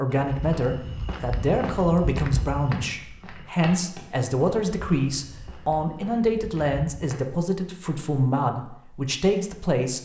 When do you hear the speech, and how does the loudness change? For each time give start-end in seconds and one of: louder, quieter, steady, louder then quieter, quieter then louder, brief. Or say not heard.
0.0-10.0 steady.